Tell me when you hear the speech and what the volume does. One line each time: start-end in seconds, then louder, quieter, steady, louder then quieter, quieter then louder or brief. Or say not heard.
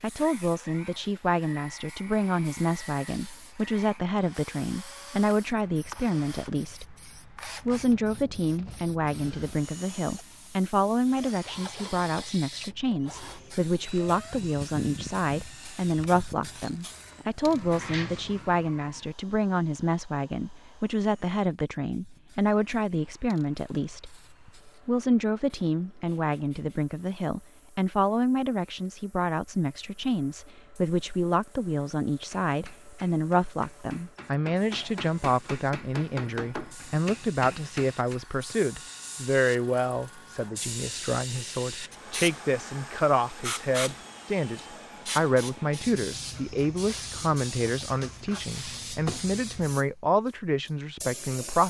0.0-51.6 steady.